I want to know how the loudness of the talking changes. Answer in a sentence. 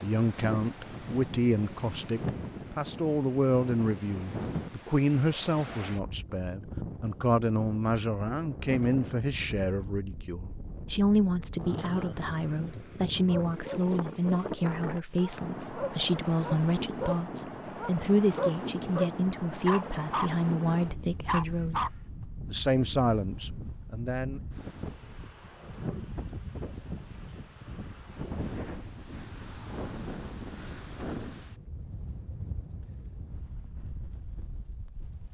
The volume of the talking stays about the same.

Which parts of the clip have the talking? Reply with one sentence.
The talking can be heard from 0.0 to 24.4 s.